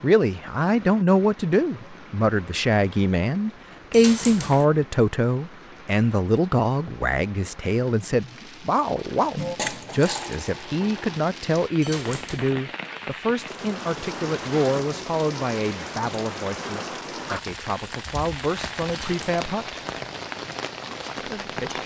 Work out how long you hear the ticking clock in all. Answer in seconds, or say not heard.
not heard.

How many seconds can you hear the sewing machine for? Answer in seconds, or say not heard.
2 s.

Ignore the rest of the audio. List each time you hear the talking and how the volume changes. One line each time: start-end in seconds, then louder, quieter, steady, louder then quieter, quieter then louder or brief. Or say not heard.
0.0-19.8 quieter
21.2-21.8 brief.